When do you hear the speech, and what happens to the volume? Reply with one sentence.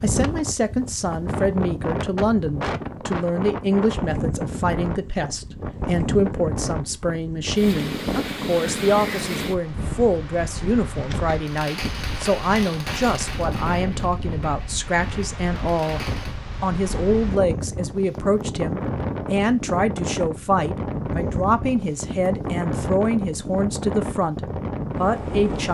The speech can be heard from 0.0 to 16.0 s, at a steady volume; and from 16.6 to 25.6 s, at a steady volume.